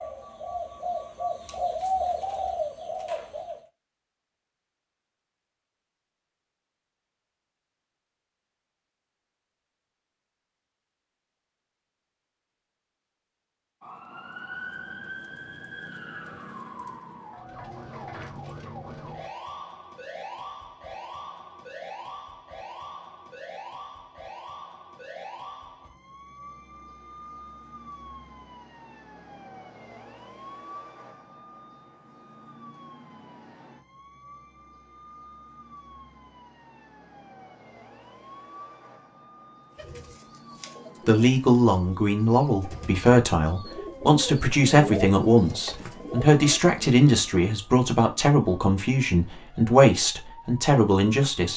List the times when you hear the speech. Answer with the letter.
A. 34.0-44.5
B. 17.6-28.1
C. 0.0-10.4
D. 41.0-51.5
D.